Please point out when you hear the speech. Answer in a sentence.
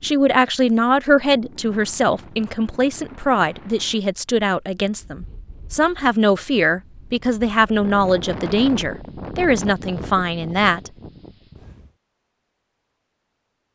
The speech can be heard from 0.0 to 10.9 s.